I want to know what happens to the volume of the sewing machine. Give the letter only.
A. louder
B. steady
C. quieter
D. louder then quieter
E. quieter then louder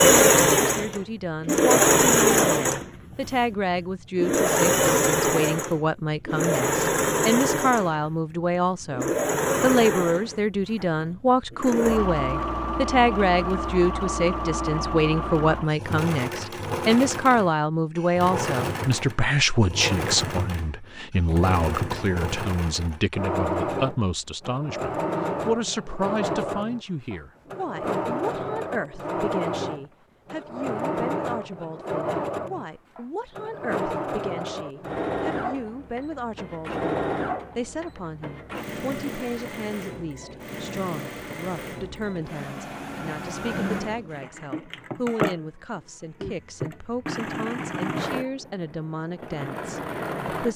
C.